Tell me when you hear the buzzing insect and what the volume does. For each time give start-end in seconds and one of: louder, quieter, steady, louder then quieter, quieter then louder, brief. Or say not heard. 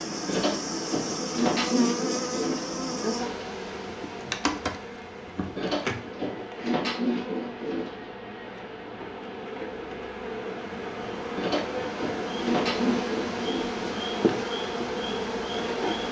0.0-16.0 quieter then louder.